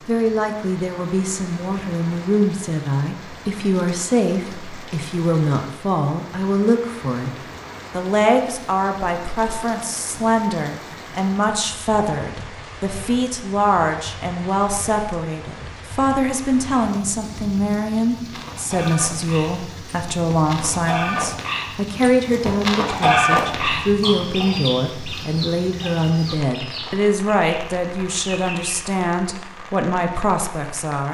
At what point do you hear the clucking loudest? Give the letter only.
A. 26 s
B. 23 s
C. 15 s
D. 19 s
B.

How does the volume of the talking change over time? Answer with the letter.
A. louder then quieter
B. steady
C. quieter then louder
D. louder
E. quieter
B.